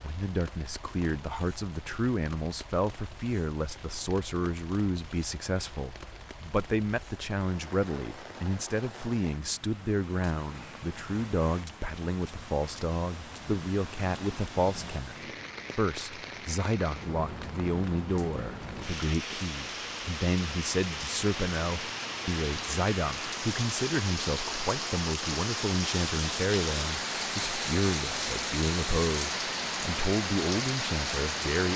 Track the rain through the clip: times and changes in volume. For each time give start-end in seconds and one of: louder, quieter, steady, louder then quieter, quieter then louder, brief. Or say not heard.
0.0-31.7 louder.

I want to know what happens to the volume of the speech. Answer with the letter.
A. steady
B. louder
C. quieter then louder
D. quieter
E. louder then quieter
A.